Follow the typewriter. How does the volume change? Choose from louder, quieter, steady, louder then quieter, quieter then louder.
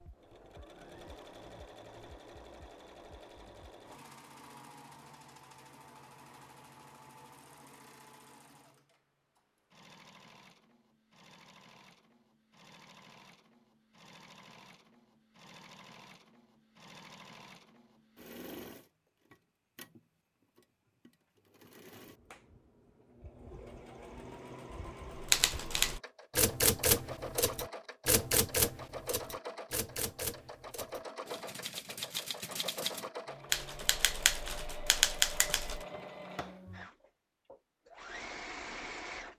quieter then louder.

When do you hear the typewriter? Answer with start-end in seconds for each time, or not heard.
25.1-35.9.